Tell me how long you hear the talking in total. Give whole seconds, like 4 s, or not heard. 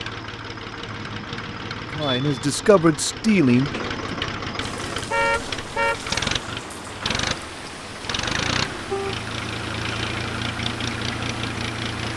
2 s.